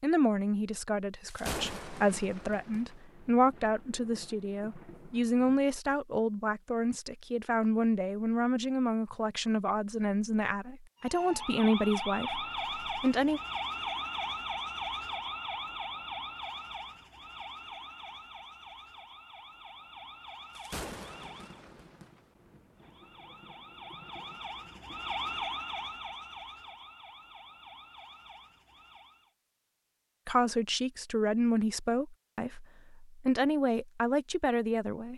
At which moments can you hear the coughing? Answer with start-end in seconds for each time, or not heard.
not heard.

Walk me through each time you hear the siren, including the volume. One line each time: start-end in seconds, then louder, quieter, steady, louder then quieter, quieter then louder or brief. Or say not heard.
11.0-21.6 quieter
22.8-29.3 louder then quieter.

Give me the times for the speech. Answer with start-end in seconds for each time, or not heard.
0.0-13.4, 30.2-35.1.